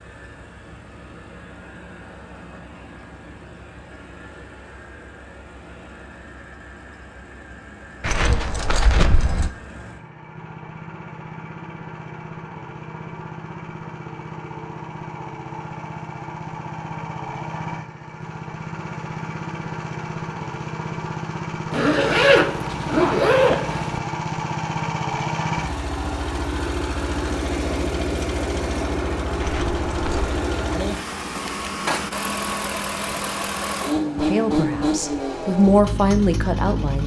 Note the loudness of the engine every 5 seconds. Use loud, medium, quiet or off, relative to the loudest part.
quiet, quiet, medium, medium, loud, loud, loud, loud.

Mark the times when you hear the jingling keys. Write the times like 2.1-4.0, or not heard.
8.0-9.5, 29.4-30.4.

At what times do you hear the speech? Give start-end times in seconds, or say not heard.
34.0-37.0.